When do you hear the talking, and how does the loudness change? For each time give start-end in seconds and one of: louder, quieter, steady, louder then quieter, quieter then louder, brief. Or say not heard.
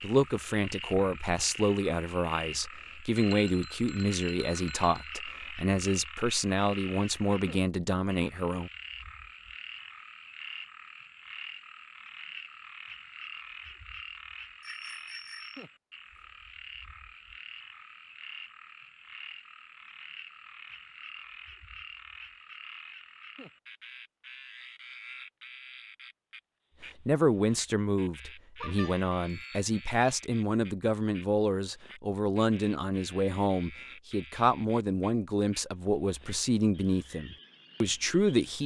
0.0-8.7 steady
27.1-38.6 steady.